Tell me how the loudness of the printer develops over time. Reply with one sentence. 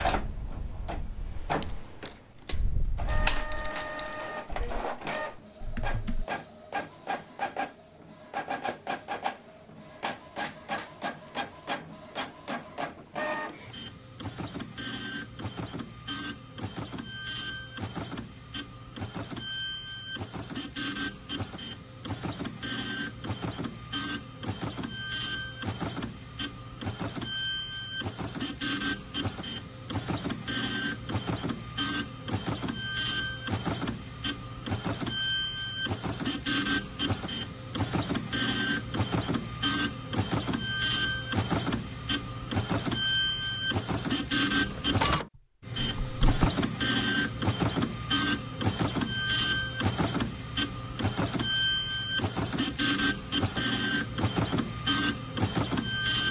The volume of the printer goes up.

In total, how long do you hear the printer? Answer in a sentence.
You can hear the printer for 56 seconds altogether.